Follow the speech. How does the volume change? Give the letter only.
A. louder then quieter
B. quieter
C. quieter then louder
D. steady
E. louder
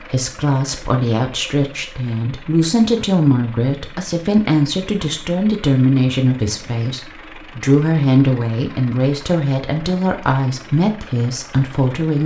D.